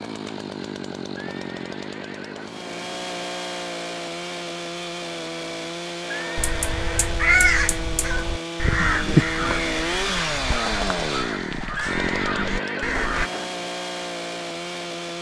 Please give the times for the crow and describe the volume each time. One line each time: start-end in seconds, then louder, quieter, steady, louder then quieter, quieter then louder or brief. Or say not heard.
6.3-13.3 quieter.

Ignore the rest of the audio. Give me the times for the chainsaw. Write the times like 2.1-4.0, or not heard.
0.0-15.1.